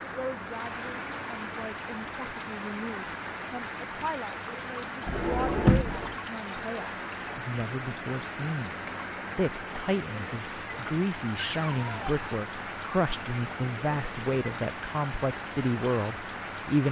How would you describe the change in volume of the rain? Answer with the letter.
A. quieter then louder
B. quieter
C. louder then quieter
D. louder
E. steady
E.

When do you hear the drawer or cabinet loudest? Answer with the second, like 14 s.
6 s.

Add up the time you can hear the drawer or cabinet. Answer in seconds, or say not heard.
2 s.